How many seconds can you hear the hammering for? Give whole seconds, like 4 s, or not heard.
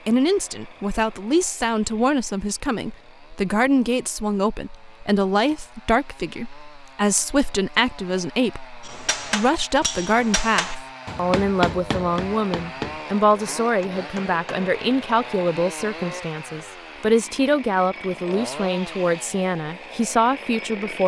6 s.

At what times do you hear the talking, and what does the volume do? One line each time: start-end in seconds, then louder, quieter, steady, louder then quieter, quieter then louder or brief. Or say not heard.
0.1-21.0 steady.